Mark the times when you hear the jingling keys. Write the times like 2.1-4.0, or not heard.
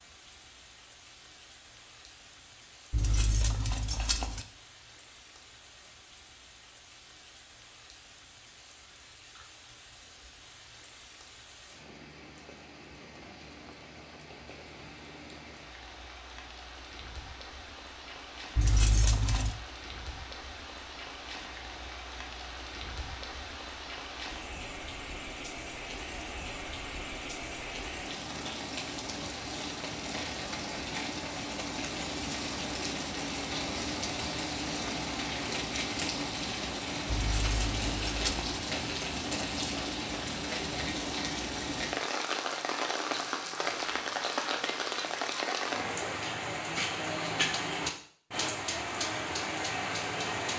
2.9-4.5, 18.6-19.6, 37.0-38.4.